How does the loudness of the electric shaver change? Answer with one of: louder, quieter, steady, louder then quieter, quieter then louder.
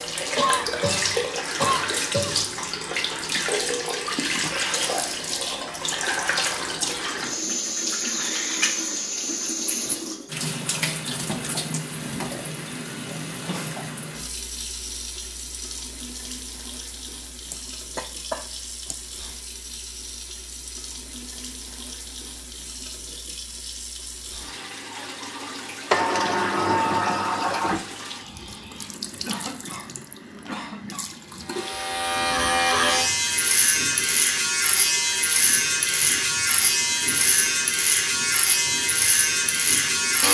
steady.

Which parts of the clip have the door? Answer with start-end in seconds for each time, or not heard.
25.9-27.9.